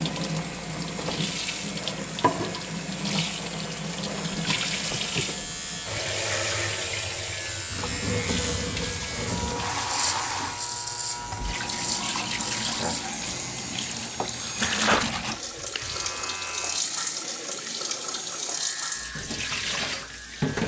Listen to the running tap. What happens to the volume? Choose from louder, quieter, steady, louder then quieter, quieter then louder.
steady.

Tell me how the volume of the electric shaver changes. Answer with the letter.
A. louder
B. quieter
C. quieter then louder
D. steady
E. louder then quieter
E.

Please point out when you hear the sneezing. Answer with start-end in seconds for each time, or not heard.
14.2-15.1.